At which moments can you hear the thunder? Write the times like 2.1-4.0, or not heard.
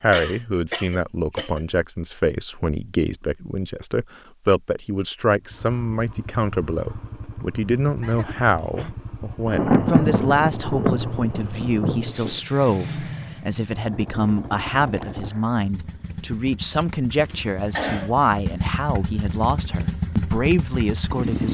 9.4-12.4.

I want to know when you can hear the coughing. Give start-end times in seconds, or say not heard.
0.1-1.6, 8.0-8.9, 17.2-18.1.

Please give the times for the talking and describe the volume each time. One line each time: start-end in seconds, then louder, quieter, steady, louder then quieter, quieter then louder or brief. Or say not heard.
0.0-21.5 steady.